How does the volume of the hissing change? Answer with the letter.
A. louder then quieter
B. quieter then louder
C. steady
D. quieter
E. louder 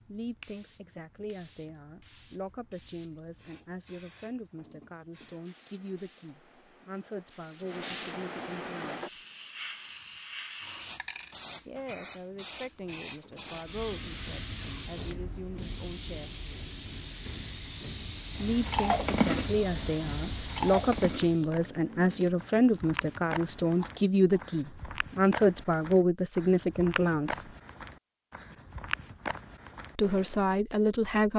E.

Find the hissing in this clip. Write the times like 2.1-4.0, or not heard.
0.0-21.5.